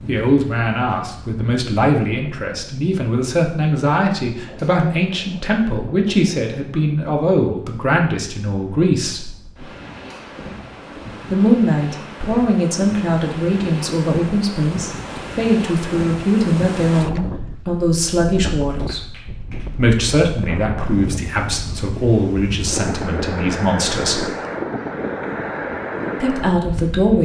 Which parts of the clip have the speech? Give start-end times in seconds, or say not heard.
0.1-9.3, 11.3-19.0, 19.8-24.2, 26.2-27.1.